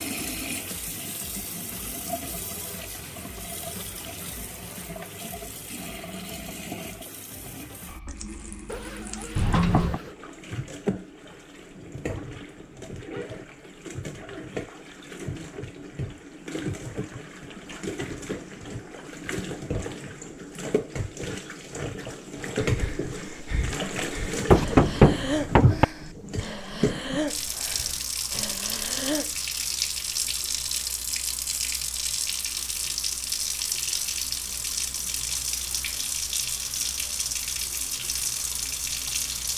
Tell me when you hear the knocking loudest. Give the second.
25 s.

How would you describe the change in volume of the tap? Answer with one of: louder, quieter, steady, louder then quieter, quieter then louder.
louder.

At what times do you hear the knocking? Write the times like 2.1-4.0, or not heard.
9.3-10.0, 24.4-25.9.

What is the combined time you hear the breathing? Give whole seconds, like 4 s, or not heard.
7 s.